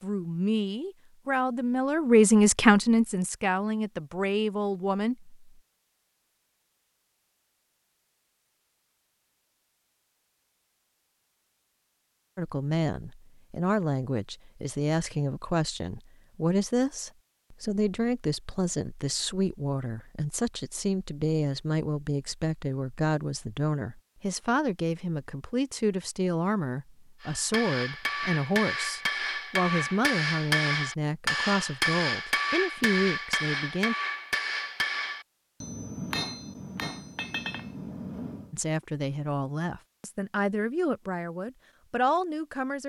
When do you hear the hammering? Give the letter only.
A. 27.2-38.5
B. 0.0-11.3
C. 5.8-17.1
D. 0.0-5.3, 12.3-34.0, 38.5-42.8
A.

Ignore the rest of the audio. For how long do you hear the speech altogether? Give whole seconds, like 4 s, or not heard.
31 s.